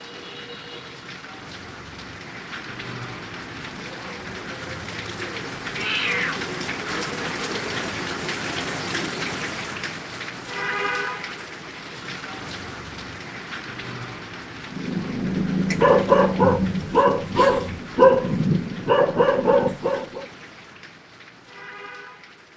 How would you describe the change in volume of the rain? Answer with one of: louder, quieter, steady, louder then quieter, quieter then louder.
louder then quieter.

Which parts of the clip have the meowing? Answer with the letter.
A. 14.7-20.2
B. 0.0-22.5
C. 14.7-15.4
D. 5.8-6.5
D.